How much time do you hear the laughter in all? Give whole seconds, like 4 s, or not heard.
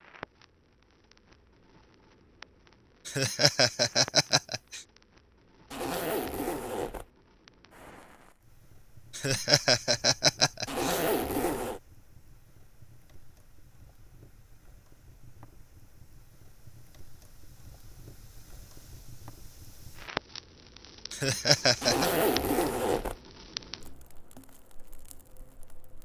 5 s.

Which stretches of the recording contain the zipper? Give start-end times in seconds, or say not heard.
5.7-7.0, 10.7-11.8, 21.8-23.1.